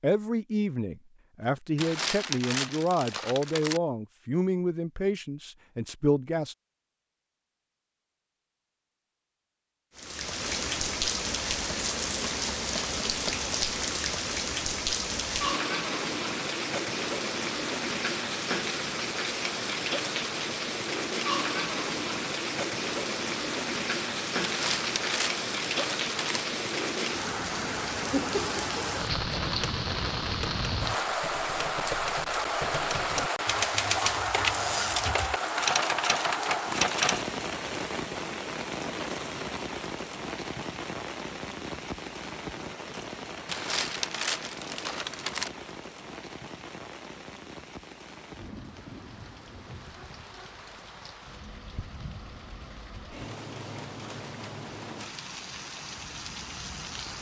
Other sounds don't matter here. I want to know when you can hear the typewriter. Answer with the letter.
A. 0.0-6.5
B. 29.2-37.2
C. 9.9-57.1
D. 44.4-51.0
B.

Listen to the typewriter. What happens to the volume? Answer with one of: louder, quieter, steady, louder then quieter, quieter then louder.
louder.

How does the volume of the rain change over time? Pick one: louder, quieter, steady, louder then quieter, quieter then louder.
quieter.